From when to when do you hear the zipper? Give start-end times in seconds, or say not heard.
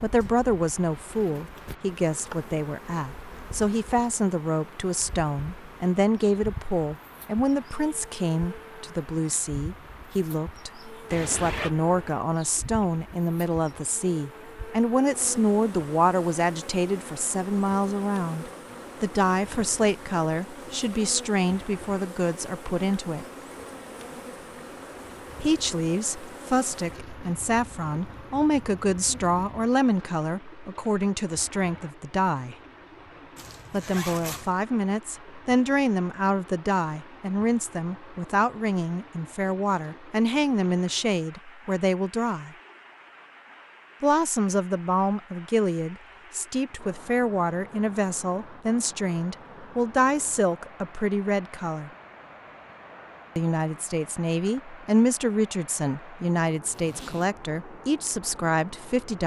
11.1-11.7, 33.4-34.5, 56.6-57.3.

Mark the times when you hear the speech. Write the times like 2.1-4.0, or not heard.
0.0-23.2, 25.4-32.5, 33.7-42.5, 44.0-51.9, 53.4-59.2.